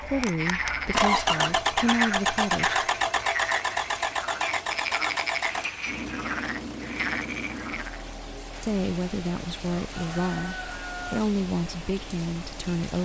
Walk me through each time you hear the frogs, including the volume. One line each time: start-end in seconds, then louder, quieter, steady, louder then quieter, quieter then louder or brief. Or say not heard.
0.0-8.1 steady.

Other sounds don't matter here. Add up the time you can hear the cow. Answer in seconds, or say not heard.
not heard.